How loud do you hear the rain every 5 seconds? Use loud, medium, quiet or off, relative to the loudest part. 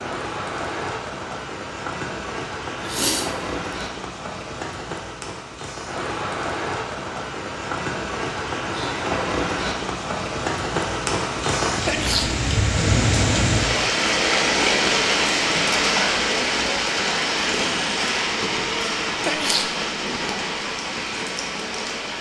medium, medium, loud, loud, medium.